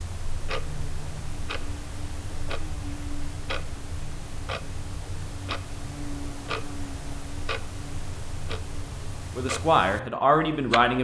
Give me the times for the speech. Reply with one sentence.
The speech can be heard from 9.3 to 10.9 s.